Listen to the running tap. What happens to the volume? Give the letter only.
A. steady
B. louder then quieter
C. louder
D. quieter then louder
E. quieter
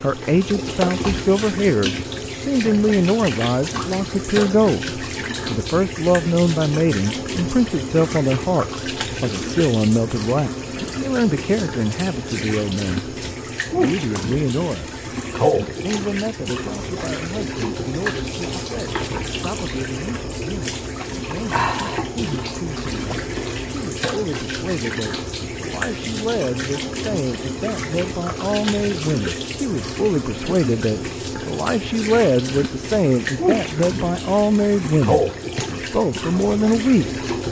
A.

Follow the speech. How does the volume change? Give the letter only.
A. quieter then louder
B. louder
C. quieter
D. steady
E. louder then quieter
A.